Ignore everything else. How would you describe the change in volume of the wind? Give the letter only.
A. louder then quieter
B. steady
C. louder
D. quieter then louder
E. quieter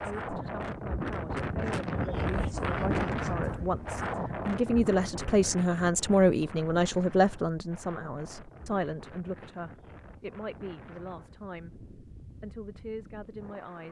E.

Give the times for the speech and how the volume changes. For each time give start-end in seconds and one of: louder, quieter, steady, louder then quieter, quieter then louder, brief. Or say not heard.
0.0-11.8 louder then quieter
12.4-13.8 brief.